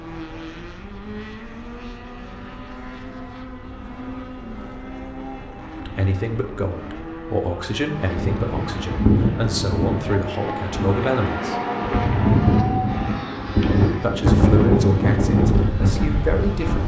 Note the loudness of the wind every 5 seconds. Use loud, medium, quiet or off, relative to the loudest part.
quiet, loud, loud, loud.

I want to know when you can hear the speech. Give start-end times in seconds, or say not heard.
5.8-11.6, 14.0-16.8.